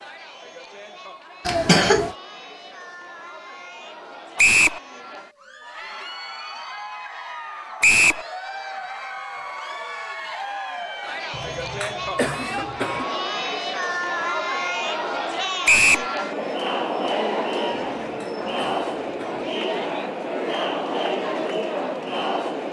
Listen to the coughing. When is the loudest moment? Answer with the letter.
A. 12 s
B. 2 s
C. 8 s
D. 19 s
B.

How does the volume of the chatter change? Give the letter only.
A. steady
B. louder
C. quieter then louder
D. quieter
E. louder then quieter
B.